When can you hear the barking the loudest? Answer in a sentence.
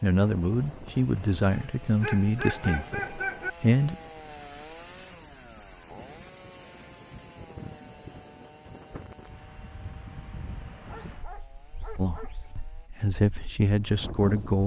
The volume of the barking peaks at 3 seconds.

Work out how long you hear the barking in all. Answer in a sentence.
You can hear the barking for 4 seconds altogether.